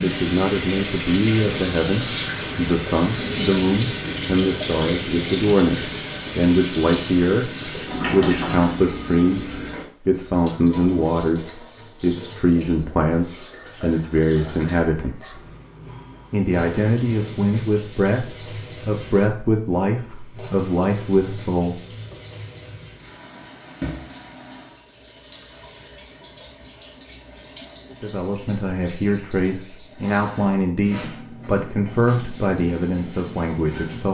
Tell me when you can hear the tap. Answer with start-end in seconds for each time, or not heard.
0.0-34.1.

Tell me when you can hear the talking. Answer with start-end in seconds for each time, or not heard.
0.0-15.4, 16.3-22.1, 28.0-34.1.